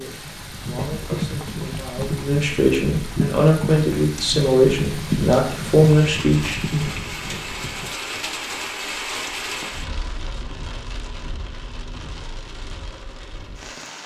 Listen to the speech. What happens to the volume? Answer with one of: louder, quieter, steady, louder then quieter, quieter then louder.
louder.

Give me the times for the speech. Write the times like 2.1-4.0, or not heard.
0.0-6.9.